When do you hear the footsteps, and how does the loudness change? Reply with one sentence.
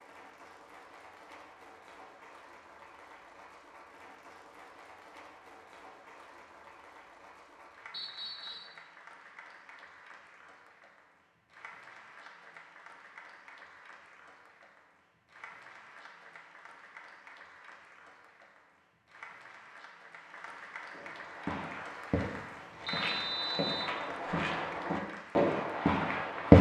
You can hear the footsteps from 20.9 to 26.5 s, getting louder.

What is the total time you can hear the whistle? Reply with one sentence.
The whistle can be heard for 2 seconds in total.